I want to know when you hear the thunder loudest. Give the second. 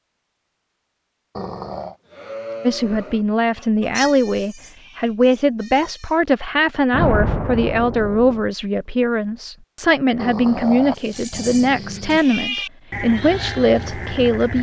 7 s.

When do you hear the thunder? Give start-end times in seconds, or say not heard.
6.9-8.4.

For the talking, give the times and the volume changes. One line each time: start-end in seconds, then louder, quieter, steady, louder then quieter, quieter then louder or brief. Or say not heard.
2.6-14.5 steady.